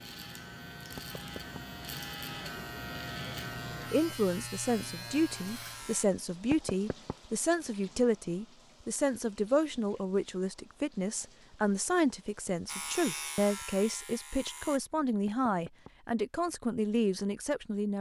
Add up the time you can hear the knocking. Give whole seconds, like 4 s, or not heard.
2 s.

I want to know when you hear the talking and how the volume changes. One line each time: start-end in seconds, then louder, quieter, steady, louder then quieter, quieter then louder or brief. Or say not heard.
3.9-17.9 steady.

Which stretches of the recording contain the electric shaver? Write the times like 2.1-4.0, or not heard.
0.0-6.0, 12.7-14.8.